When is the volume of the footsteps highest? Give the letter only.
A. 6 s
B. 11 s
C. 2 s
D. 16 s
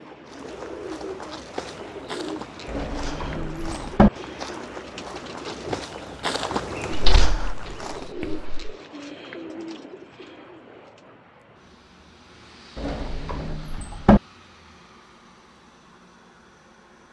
A.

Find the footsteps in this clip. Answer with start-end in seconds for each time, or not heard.
0.2-8.5.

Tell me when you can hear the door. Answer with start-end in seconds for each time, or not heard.
2.6-4.1, 6.9-8.7, 12.8-14.2.